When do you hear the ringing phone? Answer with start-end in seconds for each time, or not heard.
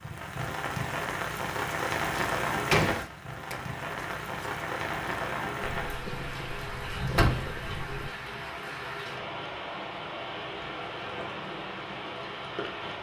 not heard.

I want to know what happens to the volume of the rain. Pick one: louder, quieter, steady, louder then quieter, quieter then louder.
quieter.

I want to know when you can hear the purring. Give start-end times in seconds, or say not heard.
5.6-8.1.